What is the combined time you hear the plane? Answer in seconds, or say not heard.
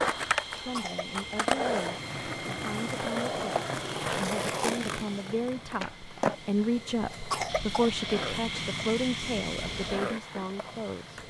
11 s.